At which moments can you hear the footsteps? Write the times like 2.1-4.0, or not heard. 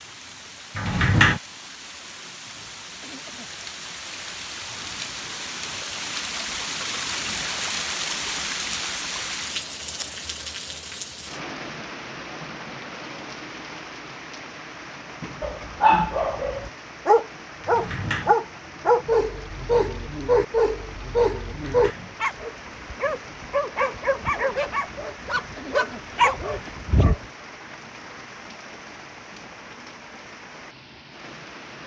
not heard.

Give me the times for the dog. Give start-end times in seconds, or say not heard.
15.4-27.2.